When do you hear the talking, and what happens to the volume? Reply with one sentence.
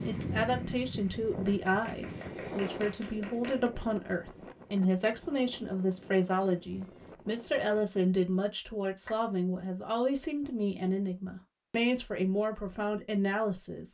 The talking can be heard from 0.0 to 13.8 s, at a steady volume.